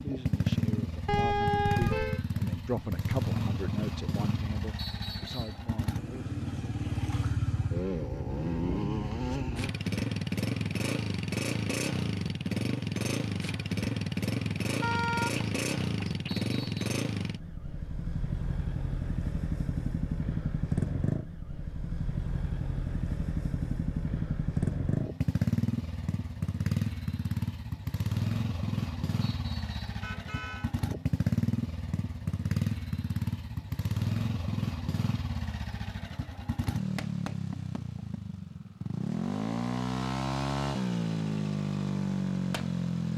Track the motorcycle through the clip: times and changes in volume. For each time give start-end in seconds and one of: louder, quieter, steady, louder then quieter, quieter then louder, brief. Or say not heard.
0.0-43.1 steady.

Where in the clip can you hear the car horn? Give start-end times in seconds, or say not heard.
1.1-2.2, 14.8-16.5, 30.0-30.7.